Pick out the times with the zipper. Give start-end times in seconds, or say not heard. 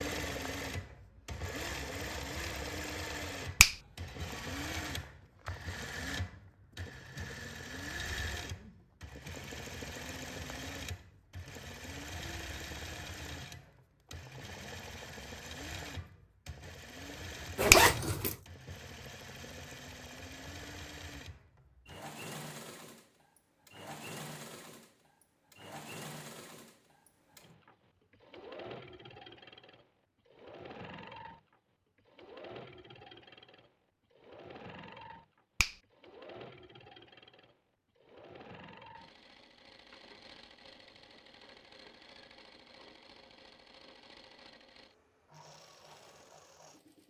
17.6-18.4.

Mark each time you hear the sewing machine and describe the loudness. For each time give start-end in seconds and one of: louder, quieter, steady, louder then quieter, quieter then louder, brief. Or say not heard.
0.0-47.0 quieter.